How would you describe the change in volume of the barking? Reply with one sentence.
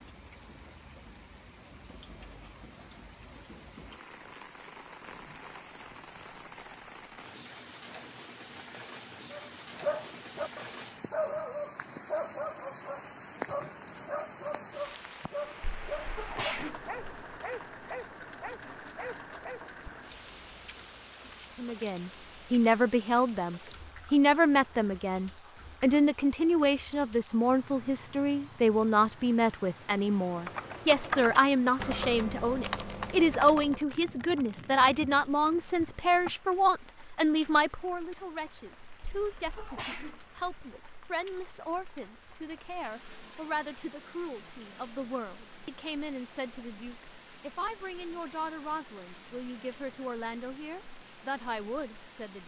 The loudness of the barking goes down.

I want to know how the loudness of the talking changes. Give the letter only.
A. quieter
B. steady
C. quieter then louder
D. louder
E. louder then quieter
A.